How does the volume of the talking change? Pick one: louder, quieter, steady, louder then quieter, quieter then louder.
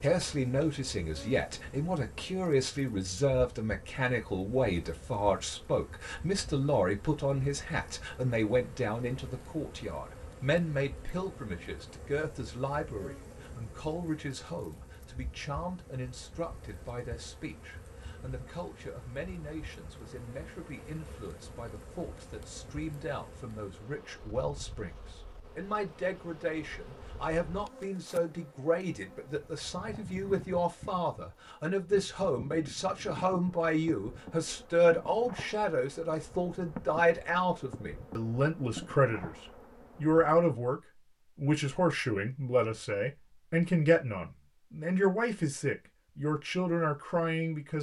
quieter then louder.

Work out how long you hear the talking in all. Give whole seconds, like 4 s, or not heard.
47 s.